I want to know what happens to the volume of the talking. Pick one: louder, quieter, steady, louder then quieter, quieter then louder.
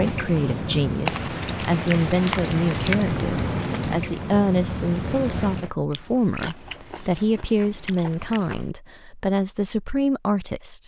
steady.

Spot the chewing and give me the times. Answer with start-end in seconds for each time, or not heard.
1.1-3.1, 5.9-8.7.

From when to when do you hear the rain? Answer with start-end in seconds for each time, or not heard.
0.0-5.7.